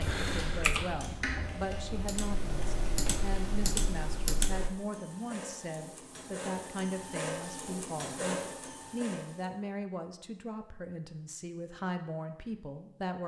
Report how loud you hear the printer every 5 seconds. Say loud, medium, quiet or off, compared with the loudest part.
loud, loud, off.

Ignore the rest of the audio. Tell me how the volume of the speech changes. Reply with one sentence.
The volume of the speech stays about the same.